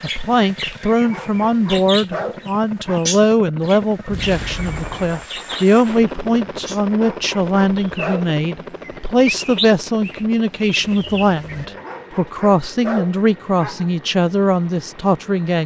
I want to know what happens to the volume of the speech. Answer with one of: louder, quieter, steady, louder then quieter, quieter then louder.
steady.